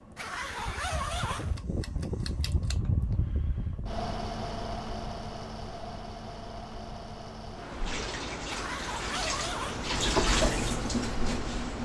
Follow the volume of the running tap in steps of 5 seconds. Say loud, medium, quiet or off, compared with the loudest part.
off, medium, loud.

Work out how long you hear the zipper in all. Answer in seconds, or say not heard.
3 s.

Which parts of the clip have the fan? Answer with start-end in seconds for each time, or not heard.
0.0-11.8.